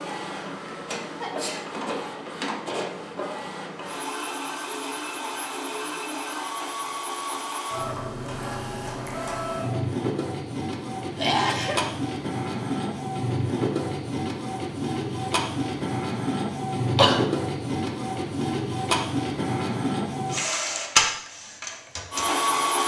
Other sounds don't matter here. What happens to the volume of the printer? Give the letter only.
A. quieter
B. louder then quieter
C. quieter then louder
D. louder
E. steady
D.